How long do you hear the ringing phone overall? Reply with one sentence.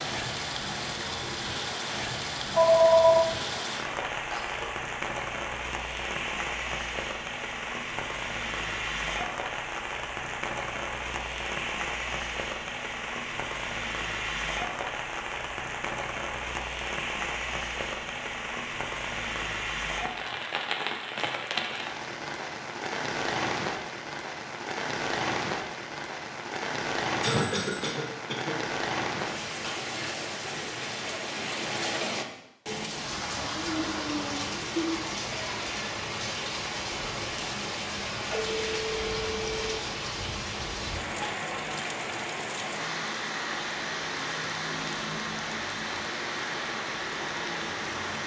The ringing phone can be heard for 3 seconds in total.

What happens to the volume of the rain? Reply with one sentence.
The loudness of the rain stays about the same.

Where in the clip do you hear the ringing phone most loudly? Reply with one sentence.
The loudest moment of the ringing phone is at 3 seconds.